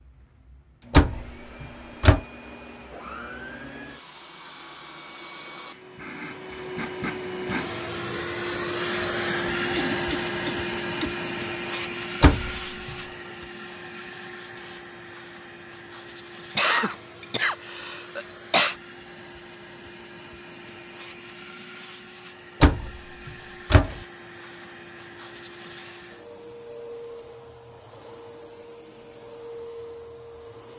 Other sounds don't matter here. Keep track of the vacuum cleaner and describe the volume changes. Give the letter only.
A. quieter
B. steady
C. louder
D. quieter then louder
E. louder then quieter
E.